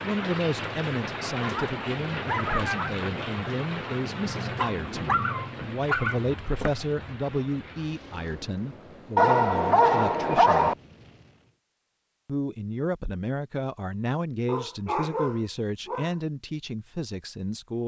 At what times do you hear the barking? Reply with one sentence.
The barking can be heard from 1.2 to 3.0 s, from 4.5 to 6.8 s, from 9.2 to 10.8 s and from 14.4 to 16.1 s.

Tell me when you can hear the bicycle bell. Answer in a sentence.
You can't hear the bicycle bell here.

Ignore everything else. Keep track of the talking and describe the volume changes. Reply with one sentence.
The volume of the talking stays about the same.